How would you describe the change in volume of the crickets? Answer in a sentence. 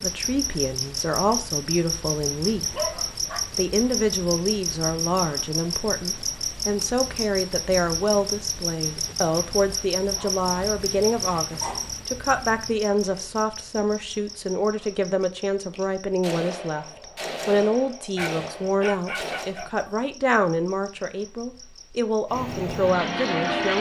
The volume of the crickets goes down.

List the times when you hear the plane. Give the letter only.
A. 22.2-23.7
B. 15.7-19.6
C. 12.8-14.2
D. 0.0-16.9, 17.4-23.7
A.